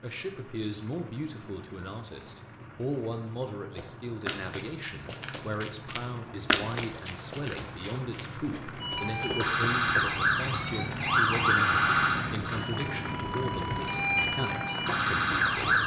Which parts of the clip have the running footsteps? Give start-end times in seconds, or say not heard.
3.8-10.2.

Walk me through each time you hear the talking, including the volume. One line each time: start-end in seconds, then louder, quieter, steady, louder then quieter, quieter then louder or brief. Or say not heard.
0.0-15.8 steady.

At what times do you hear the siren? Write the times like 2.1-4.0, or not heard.
8.8-15.8.